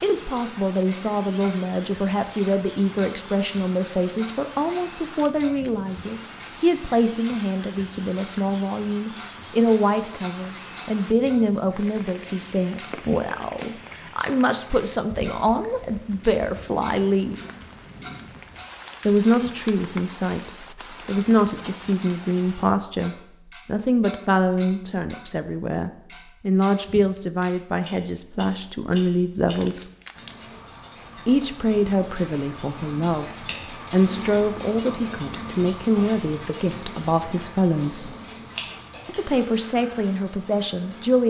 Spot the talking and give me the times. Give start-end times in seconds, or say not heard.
0.0-17.4, 19.1-29.9, 31.2-33.2, 33.9-38.1, 39.0-41.2.